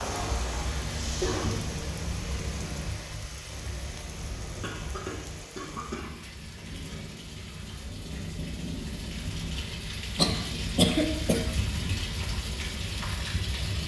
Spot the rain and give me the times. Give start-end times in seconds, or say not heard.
0.0-13.8.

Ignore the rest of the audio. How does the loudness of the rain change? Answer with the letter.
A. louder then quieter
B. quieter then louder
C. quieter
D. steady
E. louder
B.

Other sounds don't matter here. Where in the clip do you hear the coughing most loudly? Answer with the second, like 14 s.
11 s.